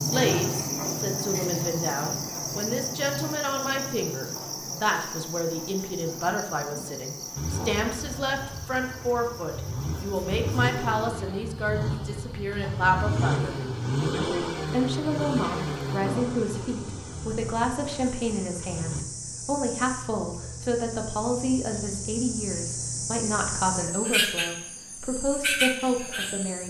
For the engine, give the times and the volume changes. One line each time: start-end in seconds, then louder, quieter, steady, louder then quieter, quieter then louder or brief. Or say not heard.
7.3-19.1 louder then quieter.